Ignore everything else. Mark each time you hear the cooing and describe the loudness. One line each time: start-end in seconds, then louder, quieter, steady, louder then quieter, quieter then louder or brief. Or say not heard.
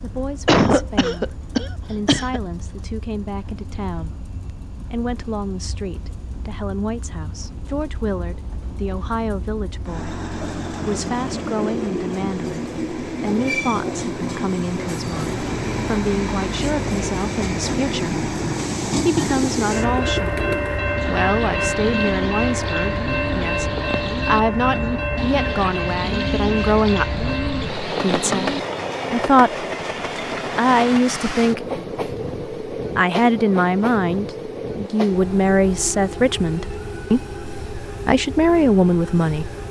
19.3-28.8 steady.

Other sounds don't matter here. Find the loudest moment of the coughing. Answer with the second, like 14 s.
1 s.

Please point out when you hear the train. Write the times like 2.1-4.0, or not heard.
0.0-39.6.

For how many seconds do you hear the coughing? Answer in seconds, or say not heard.
2 s.